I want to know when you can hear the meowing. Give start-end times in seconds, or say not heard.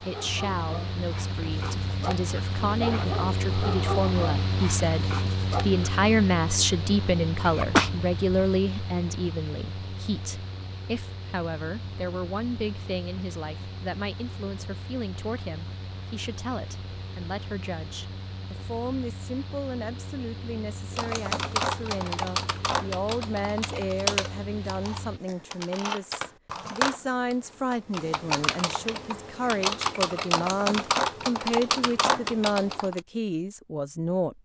not heard.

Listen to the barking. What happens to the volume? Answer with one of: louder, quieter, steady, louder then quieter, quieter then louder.
louder then quieter.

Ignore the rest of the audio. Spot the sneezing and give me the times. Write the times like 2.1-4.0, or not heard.
7.5-8.6.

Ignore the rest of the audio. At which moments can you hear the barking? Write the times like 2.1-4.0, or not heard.
0.0-5.8.